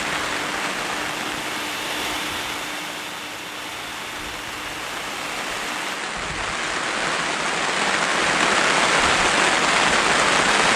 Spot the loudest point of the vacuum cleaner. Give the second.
2 s.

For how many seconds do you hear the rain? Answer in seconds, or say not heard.
11 s.